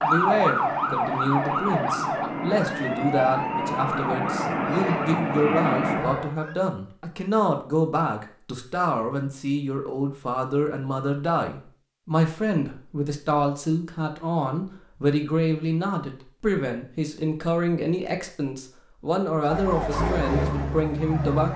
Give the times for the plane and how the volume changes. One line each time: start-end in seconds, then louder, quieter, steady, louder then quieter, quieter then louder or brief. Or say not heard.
0.0-6.3 louder.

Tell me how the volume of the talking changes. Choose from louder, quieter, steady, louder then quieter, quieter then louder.
steady.